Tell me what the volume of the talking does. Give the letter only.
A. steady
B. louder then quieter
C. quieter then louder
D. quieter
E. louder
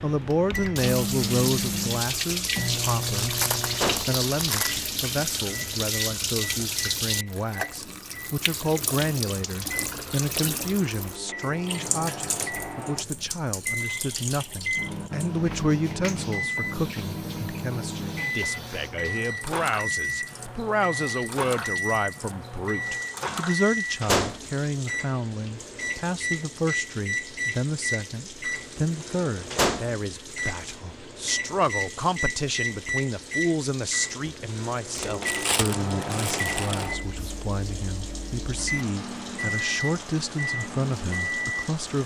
A.